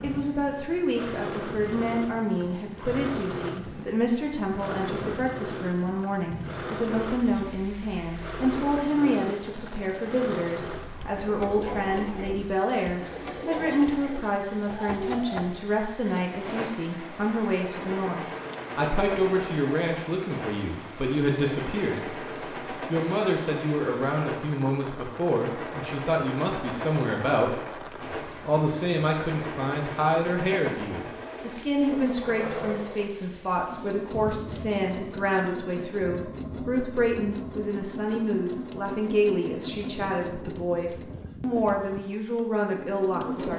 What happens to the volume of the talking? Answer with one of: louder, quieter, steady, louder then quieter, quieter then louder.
steady.